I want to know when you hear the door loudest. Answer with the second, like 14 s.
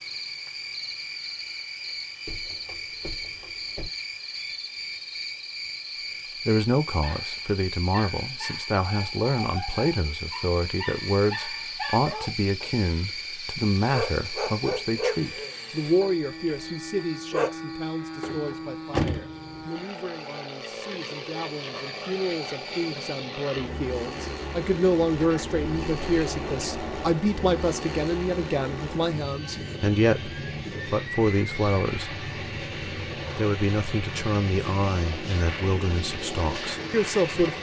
19 s.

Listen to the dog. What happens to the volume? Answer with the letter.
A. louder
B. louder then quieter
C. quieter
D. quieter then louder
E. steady
A.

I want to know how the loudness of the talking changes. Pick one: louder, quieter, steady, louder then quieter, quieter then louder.
quieter then louder.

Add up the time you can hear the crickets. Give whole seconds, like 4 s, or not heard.
23 s.